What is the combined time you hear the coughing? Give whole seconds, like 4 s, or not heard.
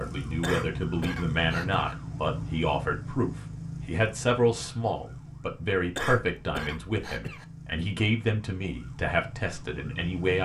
3 s.